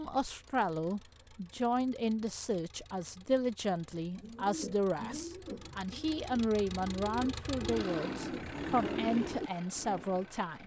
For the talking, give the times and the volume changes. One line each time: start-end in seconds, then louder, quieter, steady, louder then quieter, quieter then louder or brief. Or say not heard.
0.0-10.6 steady.